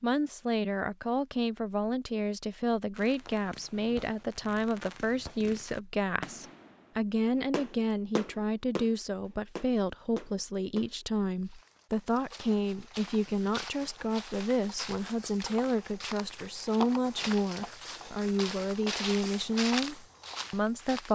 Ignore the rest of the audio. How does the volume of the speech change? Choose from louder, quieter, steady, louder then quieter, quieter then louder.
steady.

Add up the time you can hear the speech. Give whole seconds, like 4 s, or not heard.
21 s.